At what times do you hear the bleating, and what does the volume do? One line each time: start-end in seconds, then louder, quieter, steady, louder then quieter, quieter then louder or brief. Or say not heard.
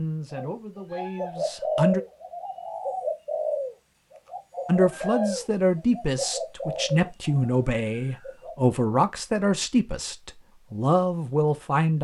not heard.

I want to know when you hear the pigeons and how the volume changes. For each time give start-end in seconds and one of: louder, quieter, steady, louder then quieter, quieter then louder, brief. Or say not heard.
0.3-8.6 quieter.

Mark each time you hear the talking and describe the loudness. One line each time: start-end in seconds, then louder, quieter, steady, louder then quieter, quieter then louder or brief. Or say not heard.
0.0-2.0 brief
4.7-11.9 steady.